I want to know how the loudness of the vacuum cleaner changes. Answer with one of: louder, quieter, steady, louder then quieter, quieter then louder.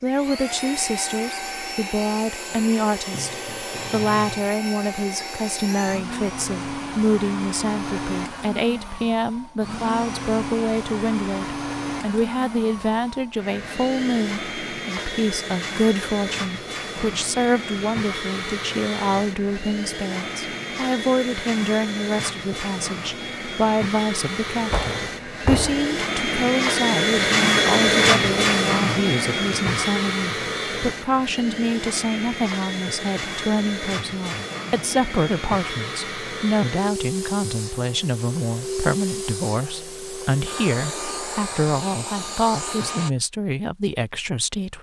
louder then quieter.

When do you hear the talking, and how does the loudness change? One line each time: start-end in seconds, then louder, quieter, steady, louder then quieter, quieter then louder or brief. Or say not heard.
0.0-44.7 steady.